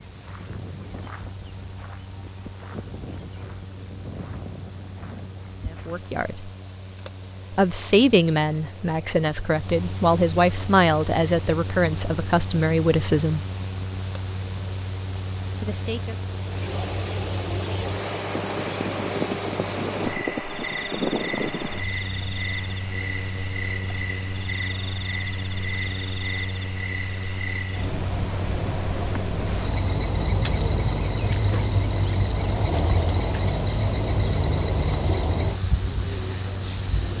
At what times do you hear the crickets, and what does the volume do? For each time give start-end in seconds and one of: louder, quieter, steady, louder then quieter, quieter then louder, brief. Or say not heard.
0.0-37.1 louder.